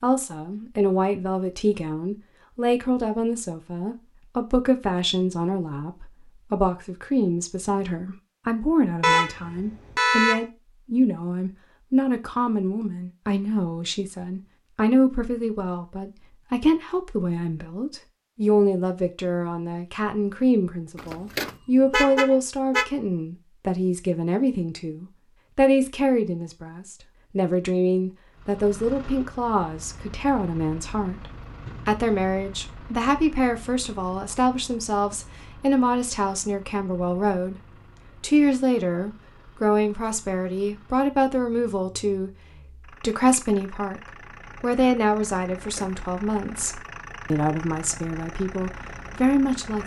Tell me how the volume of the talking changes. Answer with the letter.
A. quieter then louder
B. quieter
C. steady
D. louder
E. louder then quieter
C.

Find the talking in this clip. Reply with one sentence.
The talking can be heard from 0.0 to 37.5 s, from 38.2 to 44.0 s and from 44.6 to 49.8 s.